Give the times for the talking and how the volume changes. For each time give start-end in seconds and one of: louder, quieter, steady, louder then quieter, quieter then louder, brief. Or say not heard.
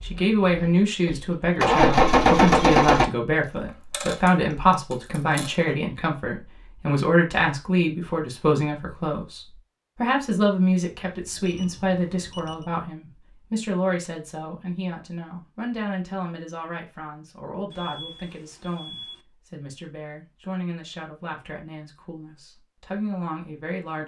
0.0-24.0 quieter.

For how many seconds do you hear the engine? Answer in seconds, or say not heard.
3 s.